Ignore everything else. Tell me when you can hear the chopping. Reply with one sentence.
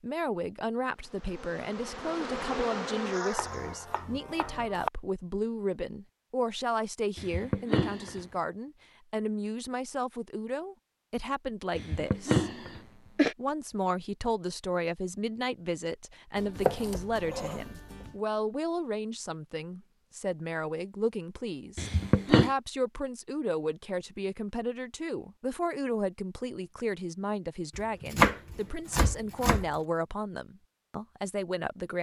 The chopping can be heard from 3.4 to 4.9 s, from 16.4 to 18.1 s and from 27.8 to 29.7 s.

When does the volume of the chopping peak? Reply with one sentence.
The volume of the chopping peaks at 28 seconds.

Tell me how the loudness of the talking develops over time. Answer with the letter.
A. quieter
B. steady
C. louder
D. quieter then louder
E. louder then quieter
B.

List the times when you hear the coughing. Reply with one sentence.
The coughing can be heard from 7.2 to 8.2 s, from 11.8 to 13.3 s and from 21.8 to 22.5 s.